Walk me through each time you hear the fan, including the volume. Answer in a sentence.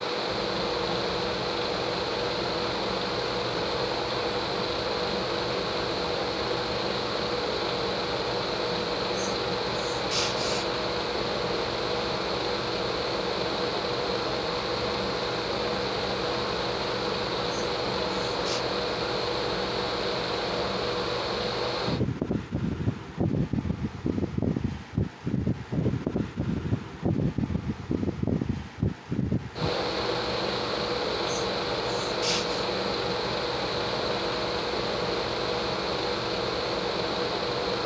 The fan can be heard from 0.0 to 37.8 s, at a steady volume.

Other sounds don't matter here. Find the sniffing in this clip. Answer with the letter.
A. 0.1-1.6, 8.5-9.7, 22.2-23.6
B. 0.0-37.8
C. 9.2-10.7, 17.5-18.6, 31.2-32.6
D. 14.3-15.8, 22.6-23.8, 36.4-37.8
C.